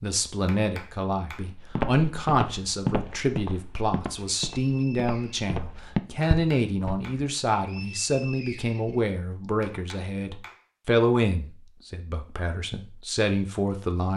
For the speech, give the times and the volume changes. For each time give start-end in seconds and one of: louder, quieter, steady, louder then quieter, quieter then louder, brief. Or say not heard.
0.0-14.1 steady.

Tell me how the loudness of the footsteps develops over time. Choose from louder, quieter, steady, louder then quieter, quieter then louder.
quieter then louder.